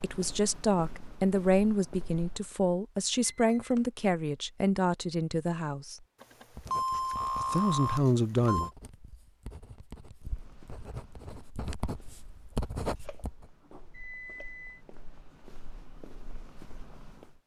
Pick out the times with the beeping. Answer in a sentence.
The beeping can be heard from 3.2 to 3.9 s, from 6.2 to 8.7 s and from 12.9 to 14.8 s.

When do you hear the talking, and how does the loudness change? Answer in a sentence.
You can hear the talking from 0.0 to 6.0 s, at a steady volume; and briefly from 7.3 to 8.7 s.